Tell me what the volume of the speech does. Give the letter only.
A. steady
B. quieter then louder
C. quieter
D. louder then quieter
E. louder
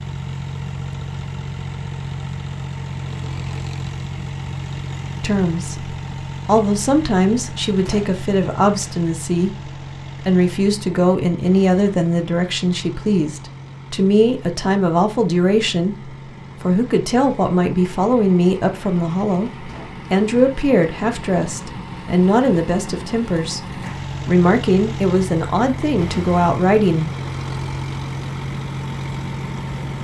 A.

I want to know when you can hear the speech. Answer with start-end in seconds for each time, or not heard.
5.2-27.1.